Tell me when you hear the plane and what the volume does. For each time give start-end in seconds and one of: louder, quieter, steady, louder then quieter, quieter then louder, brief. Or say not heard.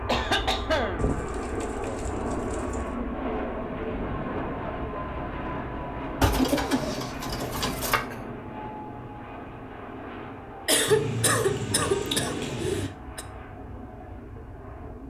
0.0-15.0 quieter.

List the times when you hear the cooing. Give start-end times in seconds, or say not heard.
0.9-3.0, 6.2-8.0, 10.8-12.9.